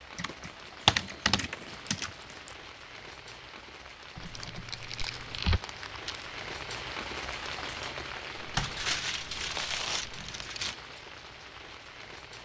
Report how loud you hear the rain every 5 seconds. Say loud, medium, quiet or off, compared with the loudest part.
medium, loud, medium.